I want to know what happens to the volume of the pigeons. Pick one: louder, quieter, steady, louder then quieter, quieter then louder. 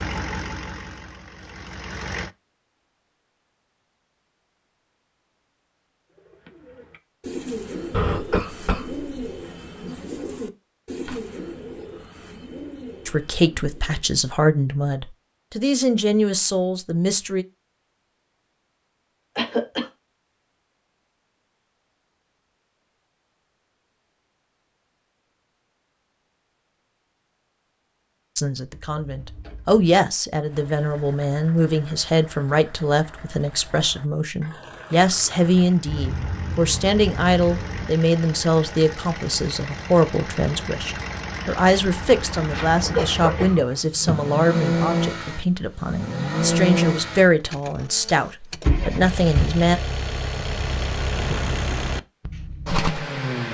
quieter.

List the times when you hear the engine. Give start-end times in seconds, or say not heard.
0.0-2.3, 30.4-53.4.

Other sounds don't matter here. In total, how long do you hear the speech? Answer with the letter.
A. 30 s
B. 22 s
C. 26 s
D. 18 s
C.